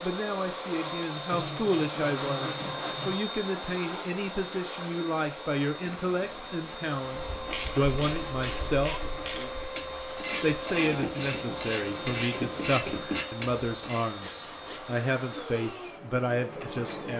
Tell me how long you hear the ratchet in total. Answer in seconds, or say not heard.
7 s.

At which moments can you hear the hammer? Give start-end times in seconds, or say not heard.
not heard.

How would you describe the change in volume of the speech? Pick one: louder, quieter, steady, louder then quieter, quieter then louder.
steady.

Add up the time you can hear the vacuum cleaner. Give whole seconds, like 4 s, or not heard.
17 s.